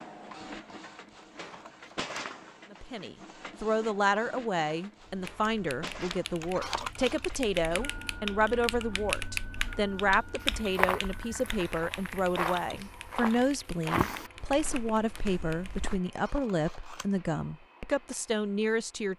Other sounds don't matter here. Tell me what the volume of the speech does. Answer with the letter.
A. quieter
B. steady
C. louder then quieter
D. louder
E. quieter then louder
B.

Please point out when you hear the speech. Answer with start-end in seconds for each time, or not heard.
2.7-19.1.